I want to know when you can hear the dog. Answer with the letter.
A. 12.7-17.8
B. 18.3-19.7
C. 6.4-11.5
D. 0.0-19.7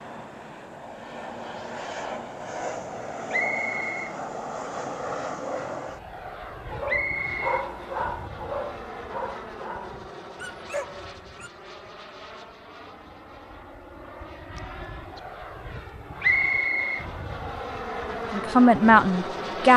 C.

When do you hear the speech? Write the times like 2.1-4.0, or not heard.
18.3-19.7.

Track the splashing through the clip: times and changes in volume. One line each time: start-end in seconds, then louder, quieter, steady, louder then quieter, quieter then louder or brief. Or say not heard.
not heard.